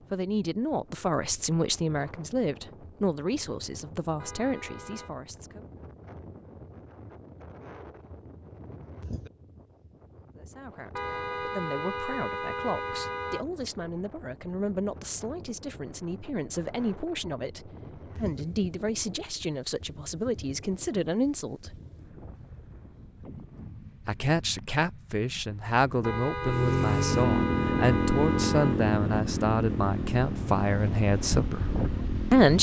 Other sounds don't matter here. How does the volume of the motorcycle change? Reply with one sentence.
The volume of the motorcycle goes down.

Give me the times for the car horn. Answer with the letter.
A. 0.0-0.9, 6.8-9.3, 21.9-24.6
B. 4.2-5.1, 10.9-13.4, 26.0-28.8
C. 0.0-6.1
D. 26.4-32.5
B.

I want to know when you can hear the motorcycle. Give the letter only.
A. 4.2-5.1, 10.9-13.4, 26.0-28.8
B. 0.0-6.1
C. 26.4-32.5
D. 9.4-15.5
C.